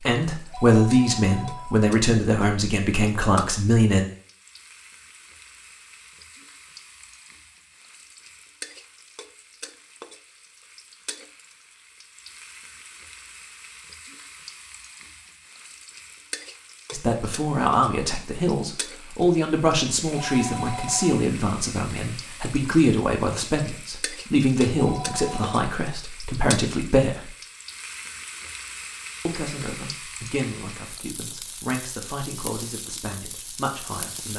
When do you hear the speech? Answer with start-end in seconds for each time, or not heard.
0.1-4.0, 16.9-27.3, 29.2-34.3.